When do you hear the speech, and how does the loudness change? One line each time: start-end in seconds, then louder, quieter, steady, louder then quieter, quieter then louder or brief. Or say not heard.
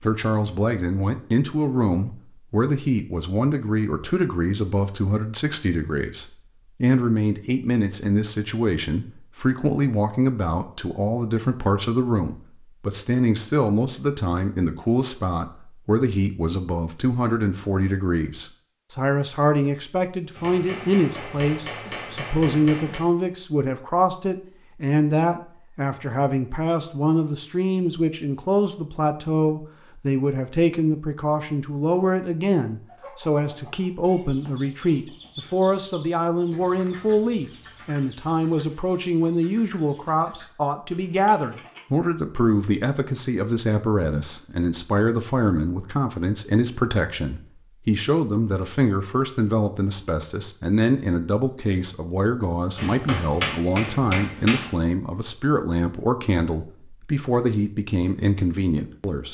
0.0-59.2 steady.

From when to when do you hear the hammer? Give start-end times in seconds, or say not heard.
20.4-23.1, 52.8-54.8.